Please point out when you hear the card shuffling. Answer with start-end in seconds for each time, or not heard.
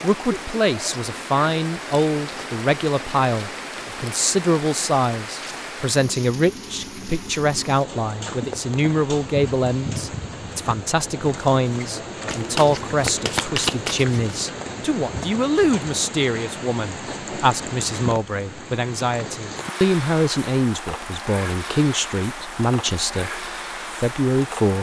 12.2-14.4.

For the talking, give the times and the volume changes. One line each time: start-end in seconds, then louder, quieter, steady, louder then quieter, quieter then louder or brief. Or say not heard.
0.0-24.7 steady.